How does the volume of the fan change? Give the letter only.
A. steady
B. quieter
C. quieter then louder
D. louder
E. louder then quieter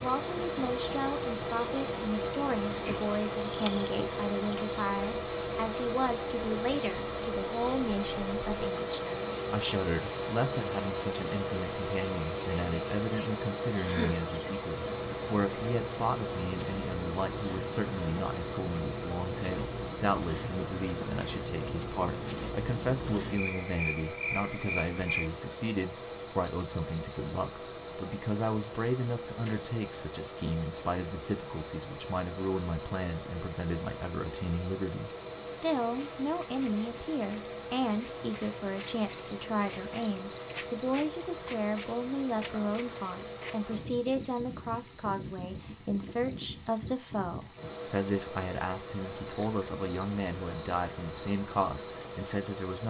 B.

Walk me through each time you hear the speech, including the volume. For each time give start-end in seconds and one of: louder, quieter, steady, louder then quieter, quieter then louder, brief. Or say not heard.
0.0-52.8 steady.